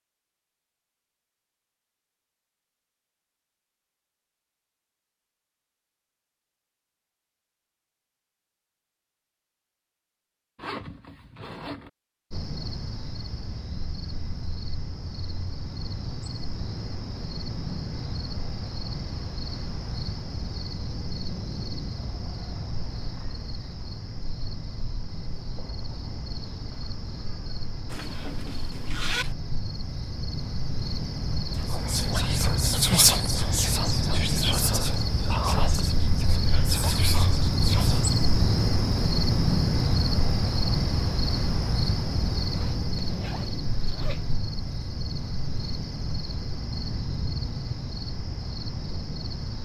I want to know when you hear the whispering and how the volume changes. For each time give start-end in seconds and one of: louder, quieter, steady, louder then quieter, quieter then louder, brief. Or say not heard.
31.7-38.1 quieter.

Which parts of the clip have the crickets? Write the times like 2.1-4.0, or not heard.
12.3-49.6.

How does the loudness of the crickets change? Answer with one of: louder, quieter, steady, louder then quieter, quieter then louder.
louder then quieter.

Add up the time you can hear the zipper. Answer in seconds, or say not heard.
5 s.